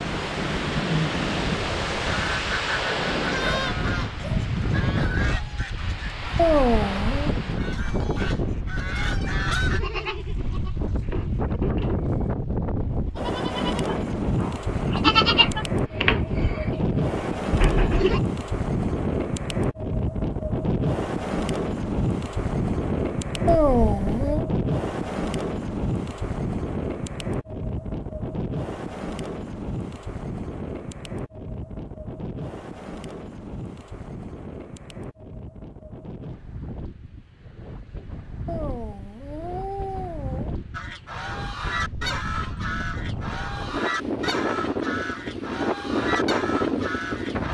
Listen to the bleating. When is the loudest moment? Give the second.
15 s.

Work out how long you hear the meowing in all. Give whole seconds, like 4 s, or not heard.
4 s.